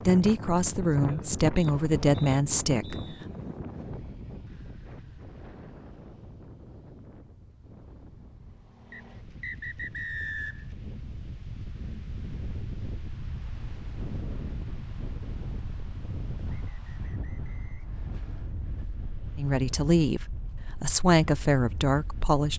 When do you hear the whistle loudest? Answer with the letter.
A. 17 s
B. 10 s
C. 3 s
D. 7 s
B.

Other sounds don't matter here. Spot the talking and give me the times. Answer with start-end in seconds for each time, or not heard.
0.1-3.1, 19.4-22.5.